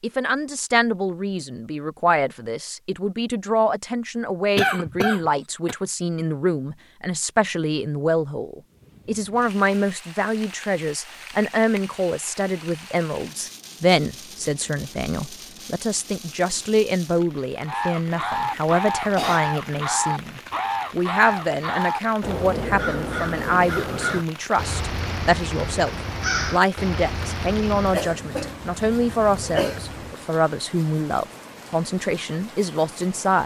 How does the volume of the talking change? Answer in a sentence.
The volume of the talking stays about the same.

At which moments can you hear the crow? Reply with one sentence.
The crow can be heard from 17.6 to 28.0 s.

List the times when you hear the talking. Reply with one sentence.
You can hear the talking from 0.0 to 33.4 s.